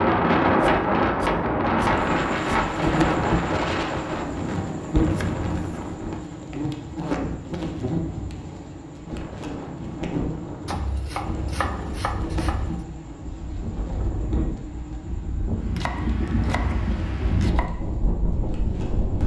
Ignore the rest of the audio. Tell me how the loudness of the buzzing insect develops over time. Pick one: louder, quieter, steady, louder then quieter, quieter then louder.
quieter.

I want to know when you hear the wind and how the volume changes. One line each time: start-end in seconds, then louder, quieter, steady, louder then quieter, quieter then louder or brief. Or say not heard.
0.0-19.2 quieter then louder.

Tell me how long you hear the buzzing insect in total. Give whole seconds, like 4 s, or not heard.
17 s.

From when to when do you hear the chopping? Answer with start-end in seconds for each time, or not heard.
0.6-2.8, 5.1-5.9, 10.7-12.8, 15.8-17.7.